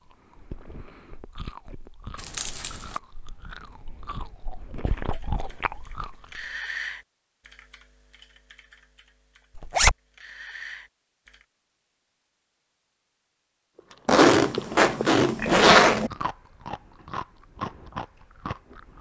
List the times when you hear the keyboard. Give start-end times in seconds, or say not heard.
4.8-11.4.